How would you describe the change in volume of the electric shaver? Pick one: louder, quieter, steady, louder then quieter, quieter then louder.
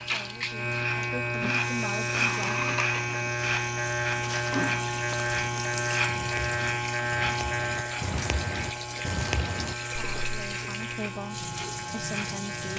quieter.